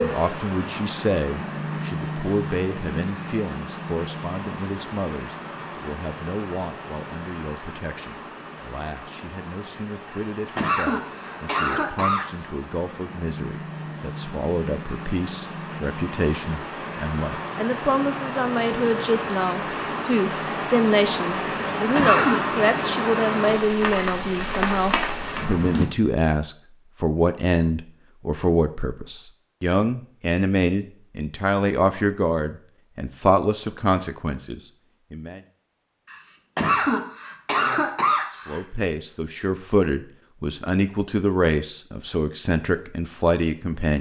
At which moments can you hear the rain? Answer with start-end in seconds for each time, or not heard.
0.0-25.9.